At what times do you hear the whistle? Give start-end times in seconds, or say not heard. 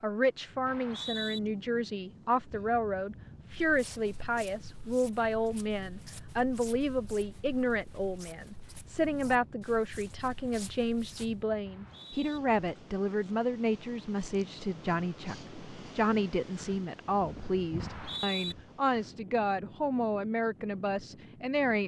0.7-1.4, 11.7-12.4, 17.8-18.6.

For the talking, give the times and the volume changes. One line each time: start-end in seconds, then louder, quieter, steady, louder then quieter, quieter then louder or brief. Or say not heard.
0.0-21.8 steady.